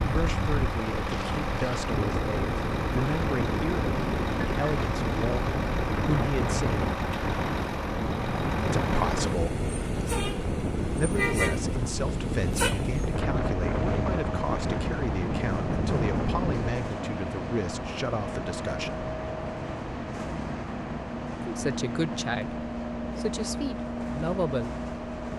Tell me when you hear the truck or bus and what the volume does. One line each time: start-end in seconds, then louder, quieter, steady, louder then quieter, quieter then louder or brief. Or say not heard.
0.0-25.3 steady.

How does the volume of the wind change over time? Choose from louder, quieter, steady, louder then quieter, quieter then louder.
steady.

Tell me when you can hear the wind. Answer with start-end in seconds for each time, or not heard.
0.0-16.8.